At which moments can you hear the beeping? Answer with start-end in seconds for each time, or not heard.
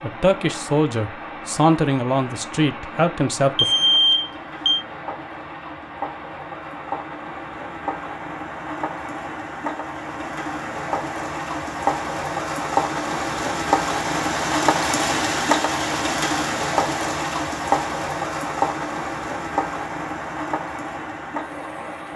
3.5-4.8.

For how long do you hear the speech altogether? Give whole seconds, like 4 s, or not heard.
4 s.